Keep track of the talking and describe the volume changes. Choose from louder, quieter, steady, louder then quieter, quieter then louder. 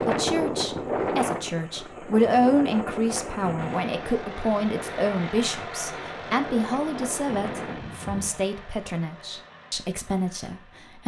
quieter.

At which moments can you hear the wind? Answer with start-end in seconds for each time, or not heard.
0.0-8.4.